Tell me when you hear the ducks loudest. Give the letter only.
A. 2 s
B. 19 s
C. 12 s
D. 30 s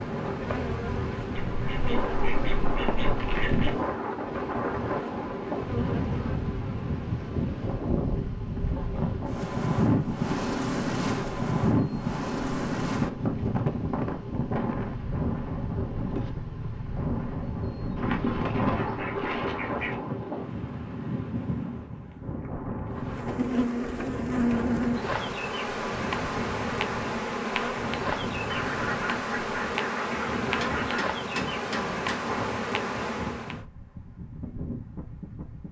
B.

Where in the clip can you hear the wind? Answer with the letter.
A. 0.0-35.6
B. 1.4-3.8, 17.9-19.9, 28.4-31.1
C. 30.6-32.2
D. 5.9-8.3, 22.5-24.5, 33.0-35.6
A.